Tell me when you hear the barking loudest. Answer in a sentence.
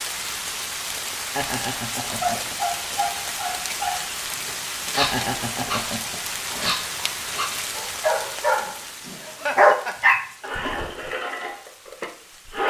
The loudest moment of the barking is at 10 seconds.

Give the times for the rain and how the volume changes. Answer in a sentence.
The rain can be heard from 0.0 to 12.6 s, getting quieter.